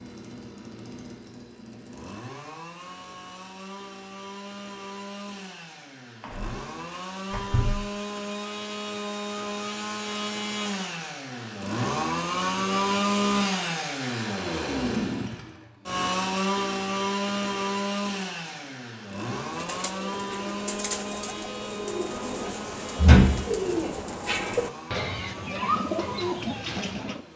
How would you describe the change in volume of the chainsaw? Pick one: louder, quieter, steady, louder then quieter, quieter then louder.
louder then quieter.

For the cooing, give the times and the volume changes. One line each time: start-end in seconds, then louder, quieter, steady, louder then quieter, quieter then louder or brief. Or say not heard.
19.5-27.2 louder.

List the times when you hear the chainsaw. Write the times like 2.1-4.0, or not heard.
0.0-27.3.